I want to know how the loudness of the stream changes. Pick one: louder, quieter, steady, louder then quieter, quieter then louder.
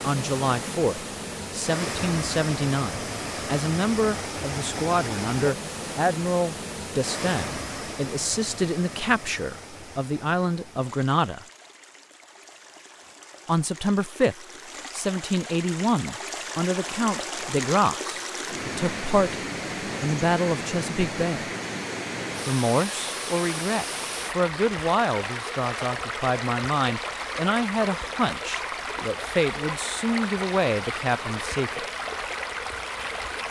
quieter then louder.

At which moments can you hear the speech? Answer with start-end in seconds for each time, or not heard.
0.0-11.4, 13.4-21.4, 22.4-31.9.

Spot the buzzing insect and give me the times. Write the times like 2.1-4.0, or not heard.
not heard.